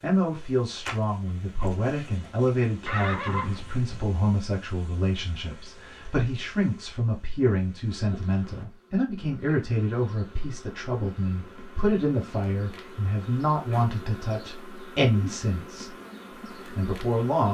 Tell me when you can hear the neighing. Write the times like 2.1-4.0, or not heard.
2.9-3.9.